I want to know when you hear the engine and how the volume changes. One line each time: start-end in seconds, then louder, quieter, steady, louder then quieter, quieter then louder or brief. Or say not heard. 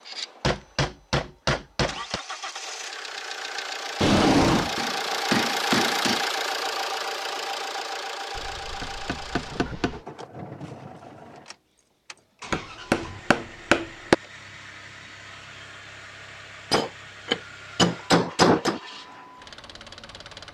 0.0-20.5 louder then quieter.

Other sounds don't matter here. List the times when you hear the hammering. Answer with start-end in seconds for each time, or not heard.
0.4-2.2, 4.8-6.2, 8.3-10.0, 12.5-14.2, 16.7-18.8.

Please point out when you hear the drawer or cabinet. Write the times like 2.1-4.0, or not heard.
4.0-4.8.